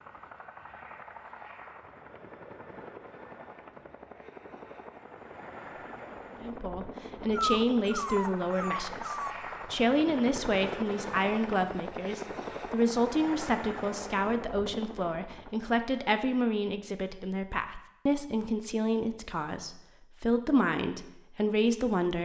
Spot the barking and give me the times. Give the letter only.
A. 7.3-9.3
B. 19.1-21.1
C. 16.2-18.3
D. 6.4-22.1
A.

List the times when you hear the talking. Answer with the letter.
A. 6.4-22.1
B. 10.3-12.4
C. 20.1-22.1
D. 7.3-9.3
A.